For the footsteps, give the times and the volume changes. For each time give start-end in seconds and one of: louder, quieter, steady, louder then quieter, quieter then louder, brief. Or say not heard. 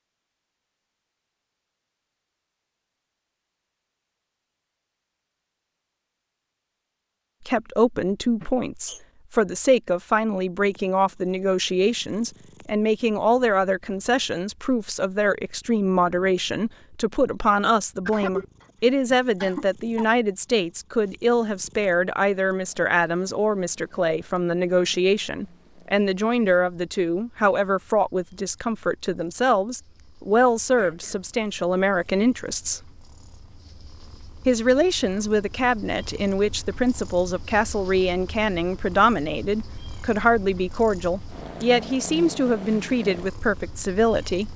not heard.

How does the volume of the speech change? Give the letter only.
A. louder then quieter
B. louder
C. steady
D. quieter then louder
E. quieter
C.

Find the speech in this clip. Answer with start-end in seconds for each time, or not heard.
7.5-32.8, 34.5-44.5.